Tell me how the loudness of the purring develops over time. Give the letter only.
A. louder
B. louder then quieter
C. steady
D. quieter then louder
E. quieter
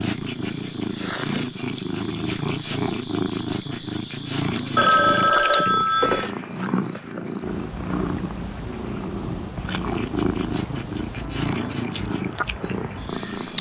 C.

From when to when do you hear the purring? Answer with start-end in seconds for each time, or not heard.
0.0-13.5.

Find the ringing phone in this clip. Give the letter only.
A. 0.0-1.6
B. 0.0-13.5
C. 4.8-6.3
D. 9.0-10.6
C.